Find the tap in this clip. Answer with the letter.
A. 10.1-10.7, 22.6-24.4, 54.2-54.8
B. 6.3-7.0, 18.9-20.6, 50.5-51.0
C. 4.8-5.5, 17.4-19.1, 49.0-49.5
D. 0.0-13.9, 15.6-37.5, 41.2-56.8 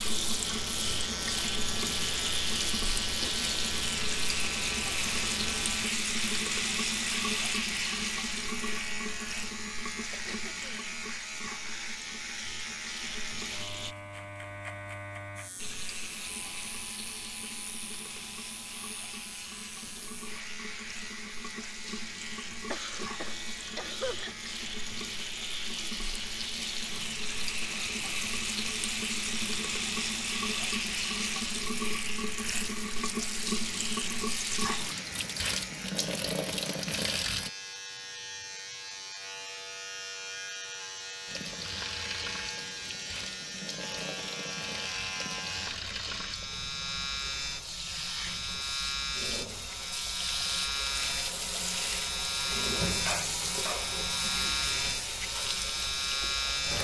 D.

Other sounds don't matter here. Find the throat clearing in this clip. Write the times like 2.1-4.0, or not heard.
10.1-10.7, 22.6-24.4, 54.2-54.8.